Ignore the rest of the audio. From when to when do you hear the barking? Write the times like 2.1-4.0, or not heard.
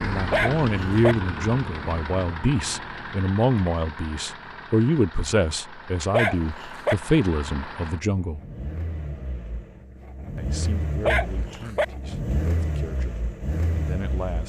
0.3-1.1, 6.1-7.0, 11.1-11.8.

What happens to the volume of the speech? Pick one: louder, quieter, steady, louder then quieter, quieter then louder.
quieter.